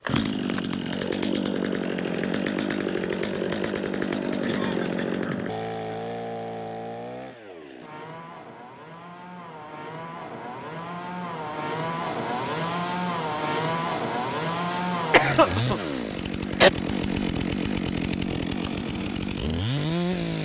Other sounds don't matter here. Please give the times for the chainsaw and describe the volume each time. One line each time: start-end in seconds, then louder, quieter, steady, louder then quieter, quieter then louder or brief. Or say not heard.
0.0-20.3 quieter then louder.